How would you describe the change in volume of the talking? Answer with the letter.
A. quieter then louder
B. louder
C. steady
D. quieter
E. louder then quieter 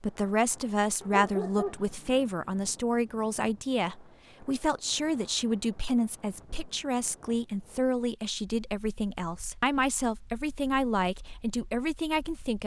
C.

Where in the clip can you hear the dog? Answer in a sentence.
You can hear the dog from 1.0 to 2.3 s.